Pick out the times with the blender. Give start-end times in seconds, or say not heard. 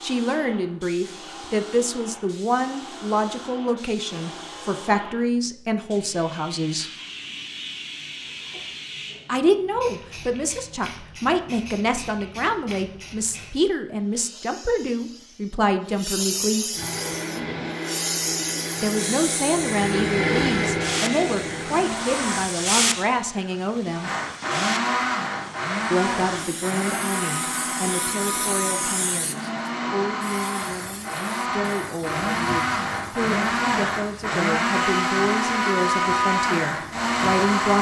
16.7-22.4, 24.0-37.7.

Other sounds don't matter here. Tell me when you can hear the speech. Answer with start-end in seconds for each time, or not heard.
0.0-6.9, 9.2-16.8, 18.8-24.1, 25.9-37.7.